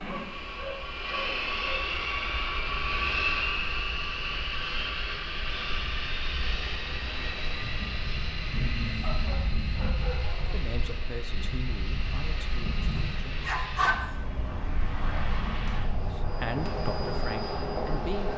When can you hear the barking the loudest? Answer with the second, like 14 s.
14 s.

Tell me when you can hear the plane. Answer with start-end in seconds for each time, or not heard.
0.0-18.3.